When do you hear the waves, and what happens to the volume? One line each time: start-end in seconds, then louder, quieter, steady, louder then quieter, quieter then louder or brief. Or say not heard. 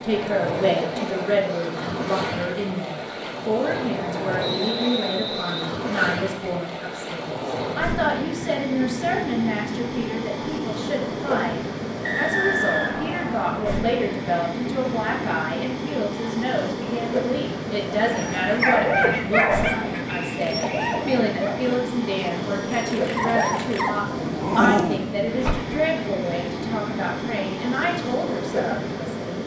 0.0-29.4 steady.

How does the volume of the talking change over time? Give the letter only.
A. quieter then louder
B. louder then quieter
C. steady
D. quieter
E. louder
C.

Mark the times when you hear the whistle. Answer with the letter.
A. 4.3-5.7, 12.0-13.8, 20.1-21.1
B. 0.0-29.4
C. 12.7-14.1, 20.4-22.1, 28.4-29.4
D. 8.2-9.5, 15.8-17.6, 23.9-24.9
A.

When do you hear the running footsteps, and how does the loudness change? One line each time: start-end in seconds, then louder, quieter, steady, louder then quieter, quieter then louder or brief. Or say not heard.
not heard.